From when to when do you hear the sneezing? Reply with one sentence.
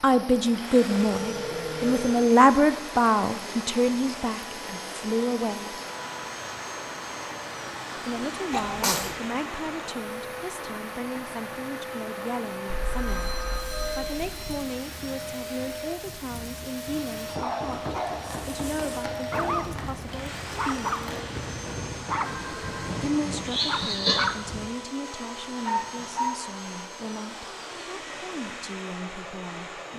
The sneezing can be heard from 8.5 to 9.2 s and from 23.1 to 24.3 s.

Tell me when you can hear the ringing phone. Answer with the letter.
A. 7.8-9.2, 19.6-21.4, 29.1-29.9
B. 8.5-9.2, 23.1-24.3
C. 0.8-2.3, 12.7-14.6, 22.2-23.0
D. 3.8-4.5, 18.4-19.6
C.